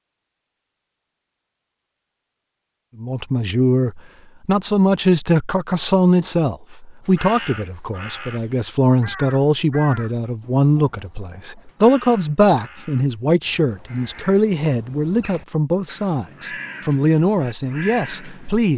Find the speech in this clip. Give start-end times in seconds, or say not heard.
3.0-18.7.